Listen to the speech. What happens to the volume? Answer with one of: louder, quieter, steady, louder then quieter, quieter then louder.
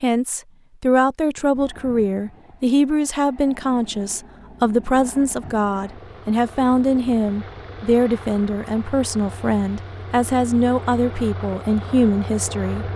steady.